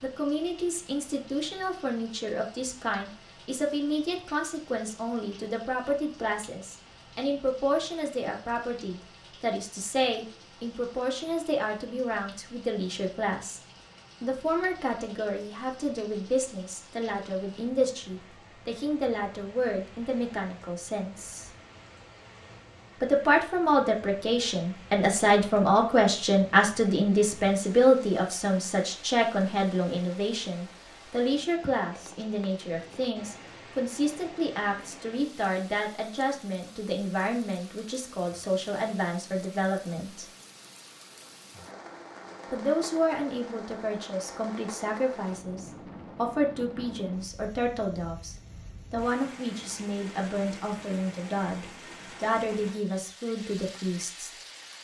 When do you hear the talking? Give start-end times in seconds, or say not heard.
0.0-13.6, 14.2-21.5, 23.0-40.2, 42.5-54.3.